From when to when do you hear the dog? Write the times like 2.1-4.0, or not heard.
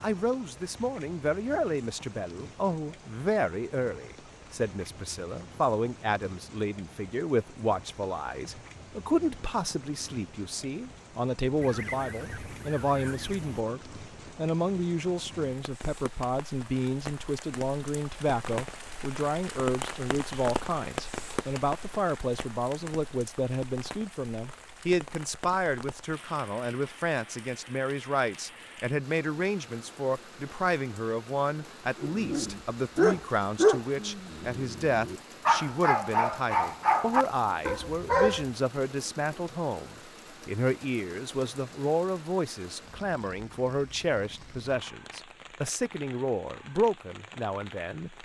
32.0-38.5.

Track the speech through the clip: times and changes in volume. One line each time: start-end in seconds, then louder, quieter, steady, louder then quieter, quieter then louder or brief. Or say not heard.
0.0-48.1 steady.